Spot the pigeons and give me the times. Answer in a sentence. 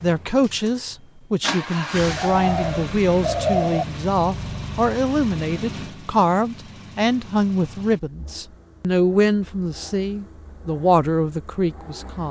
You can hear the pigeons from 2.0 to 3.9 s.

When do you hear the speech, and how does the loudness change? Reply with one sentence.
The speech can be heard from 0.0 to 12.2 s, at a steady volume.